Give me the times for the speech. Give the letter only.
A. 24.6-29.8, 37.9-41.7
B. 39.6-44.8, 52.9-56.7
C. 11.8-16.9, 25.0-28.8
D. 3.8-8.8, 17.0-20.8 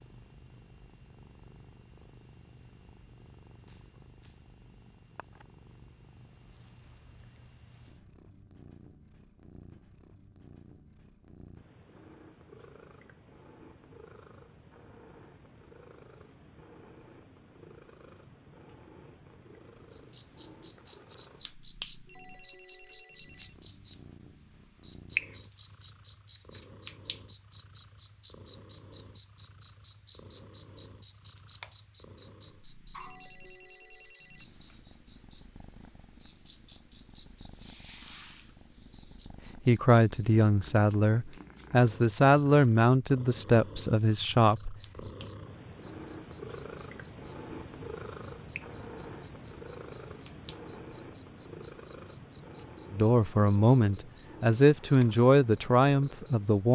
B.